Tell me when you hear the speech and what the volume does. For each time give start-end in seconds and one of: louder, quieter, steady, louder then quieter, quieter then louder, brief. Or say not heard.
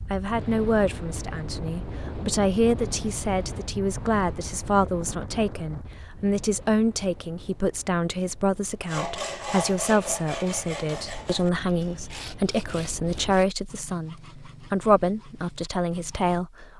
0.1-16.7 steady.